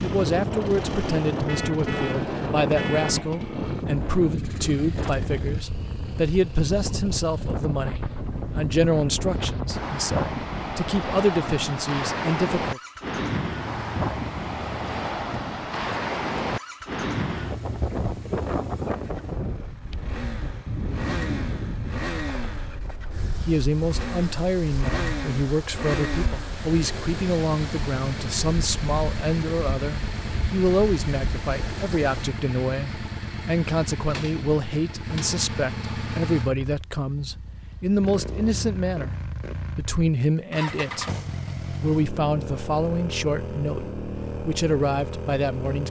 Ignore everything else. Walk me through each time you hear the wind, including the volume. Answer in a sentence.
You can hear the wind from 0.0 to 32.3 s, getting quieter.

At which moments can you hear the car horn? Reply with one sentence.
You can hear the car horn from 1.4 to 3.2 s.